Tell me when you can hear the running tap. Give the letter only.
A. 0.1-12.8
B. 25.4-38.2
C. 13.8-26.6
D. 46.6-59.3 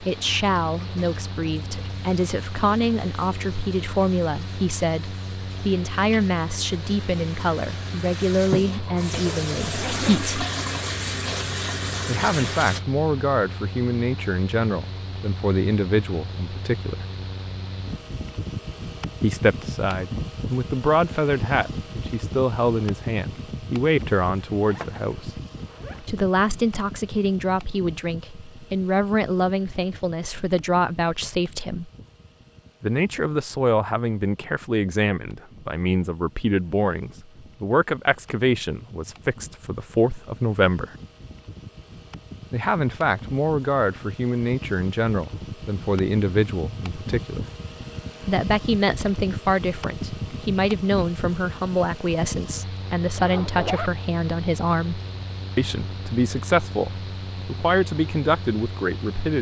A.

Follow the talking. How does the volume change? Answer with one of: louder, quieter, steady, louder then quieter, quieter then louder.
steady.